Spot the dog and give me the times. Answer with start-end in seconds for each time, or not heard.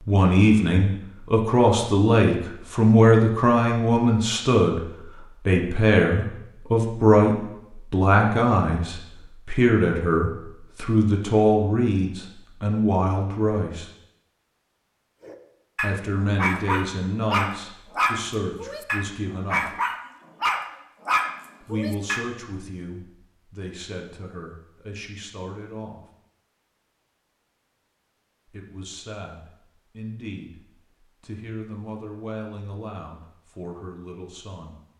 15.2-22.2.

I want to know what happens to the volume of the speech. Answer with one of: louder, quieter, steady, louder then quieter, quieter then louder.
quieter.